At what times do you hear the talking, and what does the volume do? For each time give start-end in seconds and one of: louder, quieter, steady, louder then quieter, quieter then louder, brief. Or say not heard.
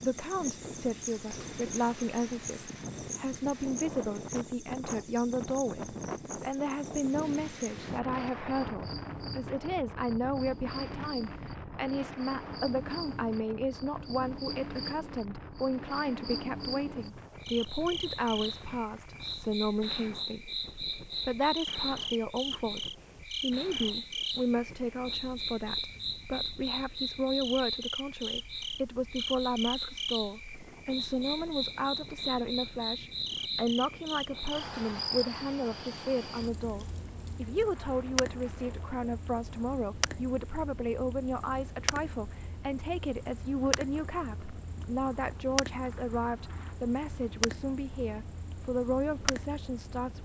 0.0-50.1 steady.